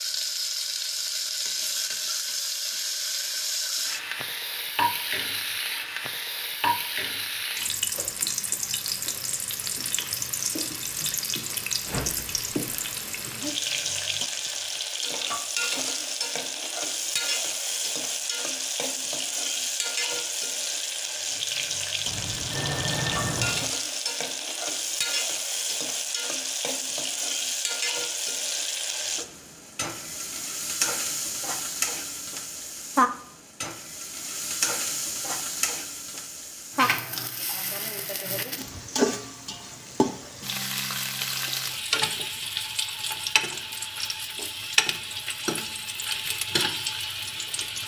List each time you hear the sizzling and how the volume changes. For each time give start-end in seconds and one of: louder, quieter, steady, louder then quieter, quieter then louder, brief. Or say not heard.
0.0-47.8 steady.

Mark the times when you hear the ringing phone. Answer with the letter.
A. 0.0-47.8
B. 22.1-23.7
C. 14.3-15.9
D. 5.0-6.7
B.